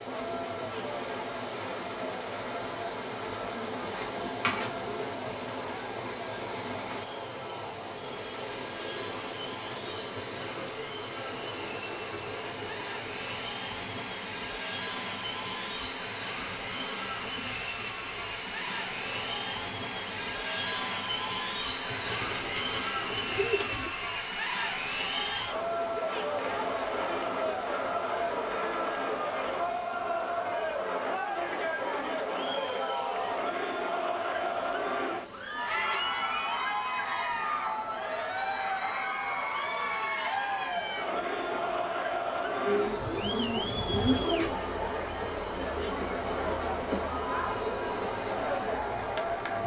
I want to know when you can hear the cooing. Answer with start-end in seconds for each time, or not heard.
3.5-5.2, 21.9-23.9, 42.6-44.5.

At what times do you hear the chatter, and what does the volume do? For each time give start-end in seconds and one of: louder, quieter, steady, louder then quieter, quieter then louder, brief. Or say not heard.
0.0-49.6 louder.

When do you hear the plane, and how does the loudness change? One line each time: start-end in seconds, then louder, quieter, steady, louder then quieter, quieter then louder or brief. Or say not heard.
not heard.